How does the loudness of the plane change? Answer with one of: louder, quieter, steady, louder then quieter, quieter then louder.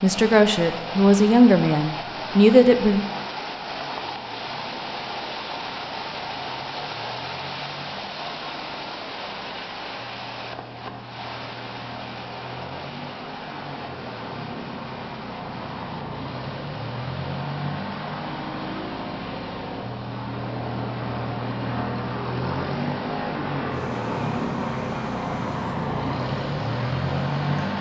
louder.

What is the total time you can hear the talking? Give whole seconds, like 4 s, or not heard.
3 s.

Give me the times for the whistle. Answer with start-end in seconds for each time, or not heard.
not heard.